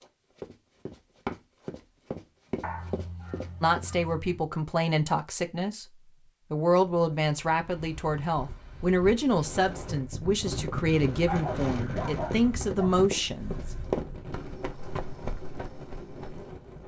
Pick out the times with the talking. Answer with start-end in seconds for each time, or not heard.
3.6-5.8, 6.5-13.6.